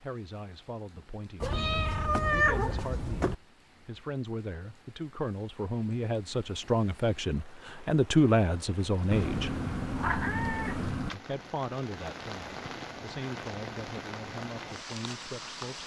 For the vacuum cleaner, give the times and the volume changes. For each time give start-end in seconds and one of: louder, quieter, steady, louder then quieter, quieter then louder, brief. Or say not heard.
not heard.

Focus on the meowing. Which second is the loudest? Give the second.
2 s.